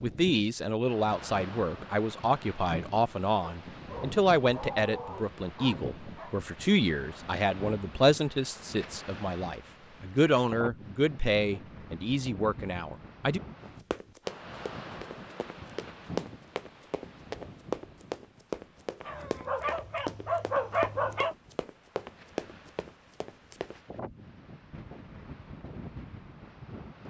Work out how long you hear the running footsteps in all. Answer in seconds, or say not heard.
10 s.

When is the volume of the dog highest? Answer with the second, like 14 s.
21 s.